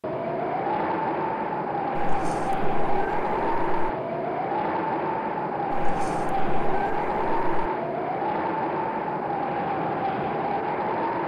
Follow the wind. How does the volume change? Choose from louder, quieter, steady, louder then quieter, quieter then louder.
steady.